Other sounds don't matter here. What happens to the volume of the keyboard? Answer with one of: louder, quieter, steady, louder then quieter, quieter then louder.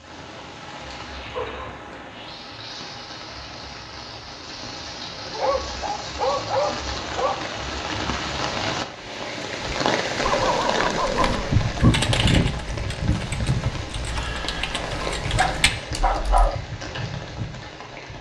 quieter then louder.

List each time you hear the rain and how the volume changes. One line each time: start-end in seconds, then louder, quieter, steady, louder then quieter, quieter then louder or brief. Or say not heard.
0.0-18.1 louder then quieter.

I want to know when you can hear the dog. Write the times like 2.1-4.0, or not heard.
1.3-2.1, 5.3-7.3, 10.2-11.9, 14.8-16.6.